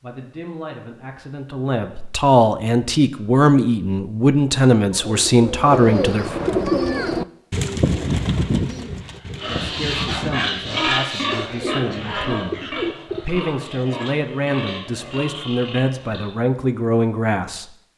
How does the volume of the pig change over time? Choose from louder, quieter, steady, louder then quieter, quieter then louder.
quieter.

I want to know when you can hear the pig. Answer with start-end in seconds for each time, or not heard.
9.2-16.4.